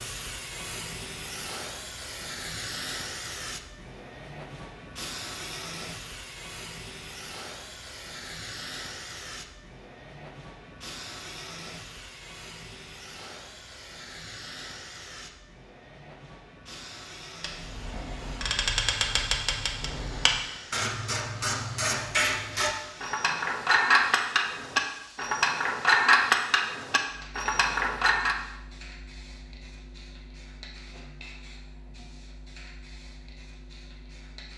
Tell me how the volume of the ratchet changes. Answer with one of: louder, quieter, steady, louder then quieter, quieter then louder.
louder.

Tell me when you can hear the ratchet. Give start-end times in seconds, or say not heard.
17.4-28.4.